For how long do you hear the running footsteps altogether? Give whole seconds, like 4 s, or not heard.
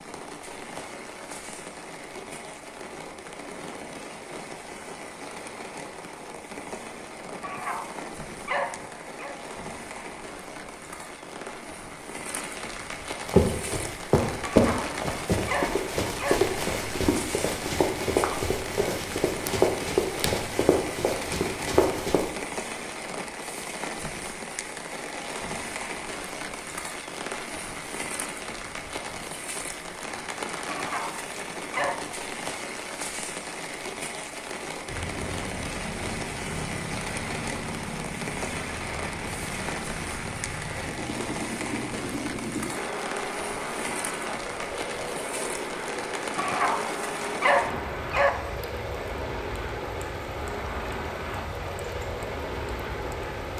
9 s.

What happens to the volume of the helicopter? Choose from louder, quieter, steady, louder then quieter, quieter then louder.
steady.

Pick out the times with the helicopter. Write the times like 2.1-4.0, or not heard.
34.9-53.5.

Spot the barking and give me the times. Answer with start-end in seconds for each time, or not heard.
7.4-9.3, 14.4-16.5, 30.6-32.1, 46.4-48.4.